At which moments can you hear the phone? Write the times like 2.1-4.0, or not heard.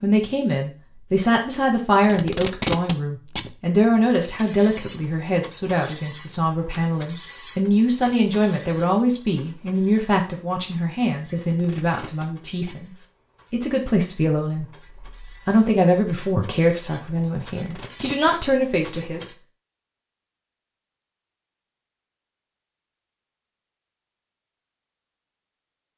not heard.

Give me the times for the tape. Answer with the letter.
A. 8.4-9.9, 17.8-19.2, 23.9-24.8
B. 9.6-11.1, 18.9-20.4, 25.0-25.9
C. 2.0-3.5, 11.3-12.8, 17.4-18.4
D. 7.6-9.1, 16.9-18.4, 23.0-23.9
C.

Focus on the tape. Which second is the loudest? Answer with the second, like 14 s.
3 s.